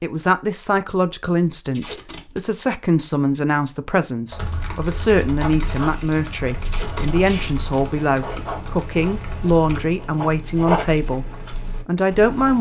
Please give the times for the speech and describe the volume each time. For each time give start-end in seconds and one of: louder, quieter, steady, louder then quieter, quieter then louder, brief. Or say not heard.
0.0-11.2 steady
11.8-12.5 brief.